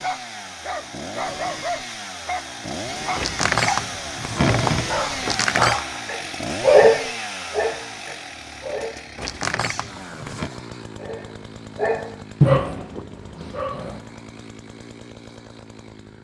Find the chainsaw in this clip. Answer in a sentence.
You can hear the chainsaw from 0.0 to 16.1 s.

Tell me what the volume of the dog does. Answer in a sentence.
The volume of the dog goes up, then down.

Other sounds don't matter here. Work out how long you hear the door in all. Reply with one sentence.
You can hear the door for 4 seconds altogether.